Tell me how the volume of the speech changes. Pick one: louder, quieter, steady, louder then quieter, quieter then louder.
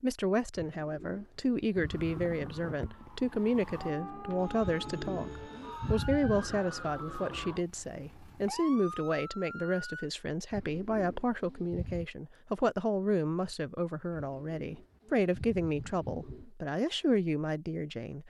steady.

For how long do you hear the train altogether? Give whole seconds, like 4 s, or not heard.
not heard.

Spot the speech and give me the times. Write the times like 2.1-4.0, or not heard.
0.0-18.2.